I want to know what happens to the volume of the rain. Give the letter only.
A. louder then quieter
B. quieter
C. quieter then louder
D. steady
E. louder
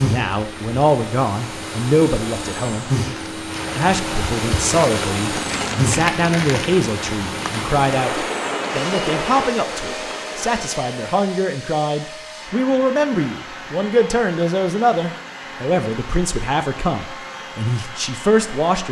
E.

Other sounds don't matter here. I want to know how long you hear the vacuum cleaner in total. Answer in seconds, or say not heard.
19 s.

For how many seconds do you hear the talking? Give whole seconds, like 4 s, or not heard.
18 s.